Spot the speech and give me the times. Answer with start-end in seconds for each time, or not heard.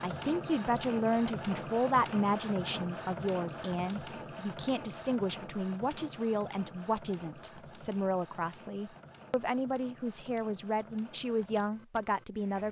0.0-12.6.